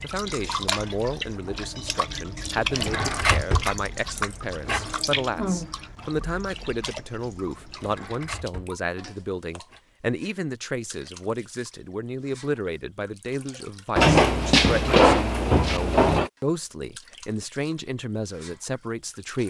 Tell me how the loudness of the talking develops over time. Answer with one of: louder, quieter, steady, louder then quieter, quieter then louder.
steady.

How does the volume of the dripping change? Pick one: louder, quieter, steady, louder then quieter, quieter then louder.
quieter.